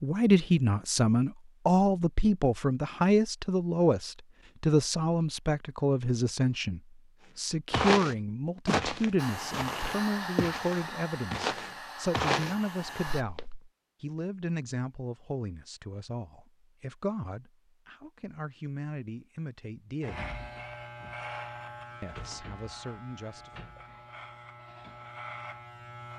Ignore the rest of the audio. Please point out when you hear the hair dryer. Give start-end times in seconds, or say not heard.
9.2-13.2.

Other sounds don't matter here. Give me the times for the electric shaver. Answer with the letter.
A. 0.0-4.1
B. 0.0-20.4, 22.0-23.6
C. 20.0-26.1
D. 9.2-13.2
C.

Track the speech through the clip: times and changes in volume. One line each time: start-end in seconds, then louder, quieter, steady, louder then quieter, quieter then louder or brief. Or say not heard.
0.0-20.4 quieter
22.0-23.6 brief.